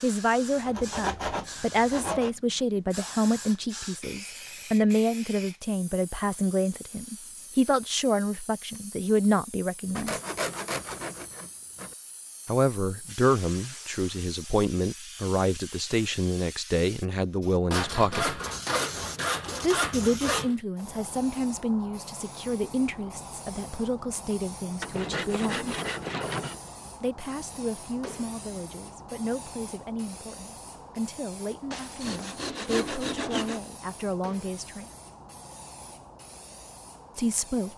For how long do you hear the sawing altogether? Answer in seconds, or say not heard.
10 s.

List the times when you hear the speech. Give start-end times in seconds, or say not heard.
0.0-10.2, 12.4-18.4, 19.6-25.8, 27.0-34.9, 37.1-37.7.